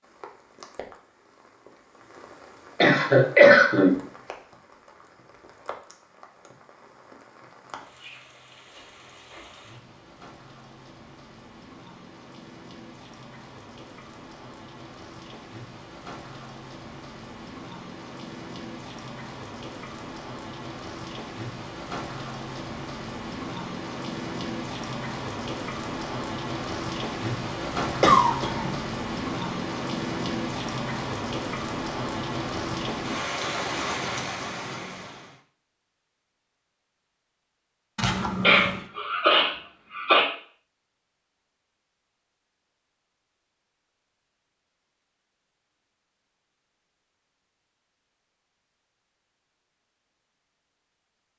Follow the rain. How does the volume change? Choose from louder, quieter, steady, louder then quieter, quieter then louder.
louder.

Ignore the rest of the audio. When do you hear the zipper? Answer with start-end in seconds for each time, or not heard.
38.0-38.9.